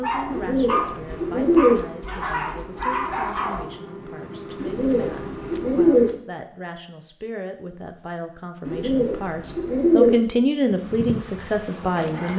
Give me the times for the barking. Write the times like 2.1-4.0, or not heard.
0.0-3.6.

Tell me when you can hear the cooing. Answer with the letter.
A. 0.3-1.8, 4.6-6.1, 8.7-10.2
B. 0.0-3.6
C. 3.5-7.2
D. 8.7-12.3
A.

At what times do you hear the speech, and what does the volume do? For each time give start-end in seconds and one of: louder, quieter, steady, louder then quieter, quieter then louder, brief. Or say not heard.
0.0-12.3 louder.